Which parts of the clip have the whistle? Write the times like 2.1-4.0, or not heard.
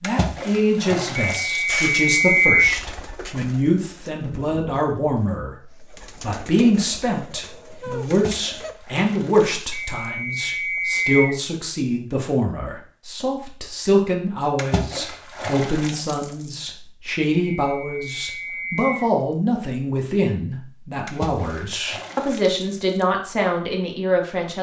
1.3-2.8, 9.7-11.4, 17.4-19.1.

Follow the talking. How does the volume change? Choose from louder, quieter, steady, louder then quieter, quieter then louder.
steady.